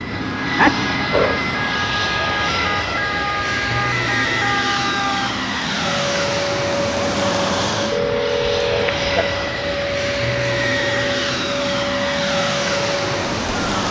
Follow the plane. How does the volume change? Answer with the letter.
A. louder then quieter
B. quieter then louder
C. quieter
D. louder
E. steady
E.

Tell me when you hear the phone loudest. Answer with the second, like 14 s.
1 s.